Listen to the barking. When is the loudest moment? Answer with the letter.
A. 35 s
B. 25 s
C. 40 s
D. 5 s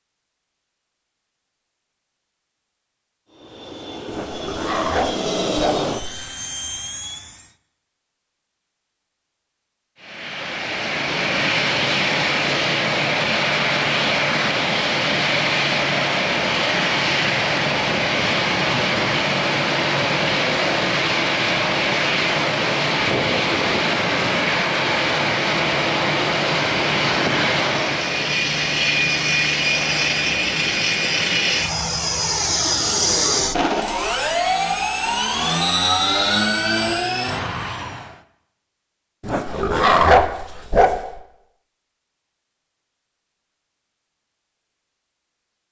C.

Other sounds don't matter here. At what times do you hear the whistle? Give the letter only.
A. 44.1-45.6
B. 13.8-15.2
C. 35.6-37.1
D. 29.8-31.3
C.